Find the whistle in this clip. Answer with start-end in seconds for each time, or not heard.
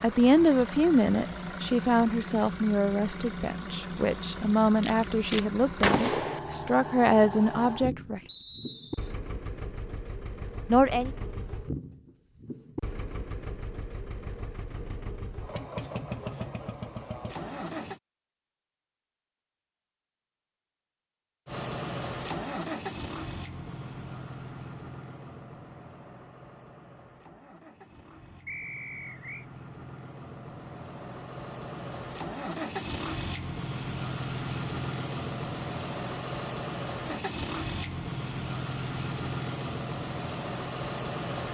8.2-9.2, 28.4-29.4.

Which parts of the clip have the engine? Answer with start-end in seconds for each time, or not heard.
0.0-18.0, 21.4-41.4.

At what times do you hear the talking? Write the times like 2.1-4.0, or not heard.
0.0-8.2, 10.7-11.1.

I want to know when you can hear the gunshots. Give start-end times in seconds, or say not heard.
4.8-6.4.